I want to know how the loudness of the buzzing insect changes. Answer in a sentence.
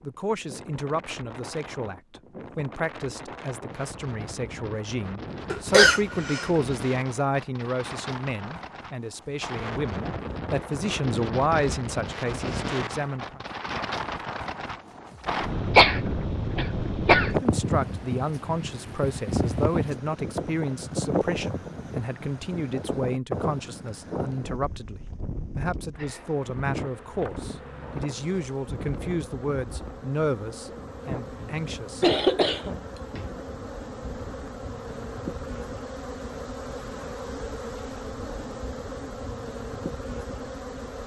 The loudness of the buzzing insect goes up.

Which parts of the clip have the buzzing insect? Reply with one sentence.
You can hear the buzzing insect from 25.9 to 41.0 s.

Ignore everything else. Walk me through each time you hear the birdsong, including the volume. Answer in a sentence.
You can't hear the birdsong here.